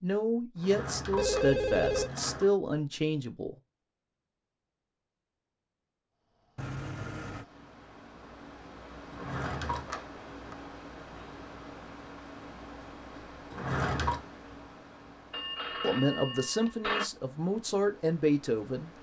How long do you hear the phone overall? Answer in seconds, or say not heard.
4 s.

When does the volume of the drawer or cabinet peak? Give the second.
14 s.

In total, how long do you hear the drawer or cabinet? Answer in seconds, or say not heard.
4 s.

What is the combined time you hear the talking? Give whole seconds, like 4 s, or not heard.
7 s.